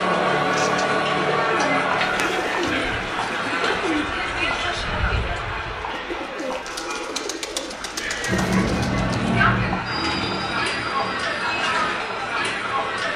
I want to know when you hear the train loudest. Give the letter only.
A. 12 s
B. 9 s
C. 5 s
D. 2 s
B.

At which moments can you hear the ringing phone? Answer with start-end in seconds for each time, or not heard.
not heard.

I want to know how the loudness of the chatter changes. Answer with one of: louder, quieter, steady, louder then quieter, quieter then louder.
quieter then louder.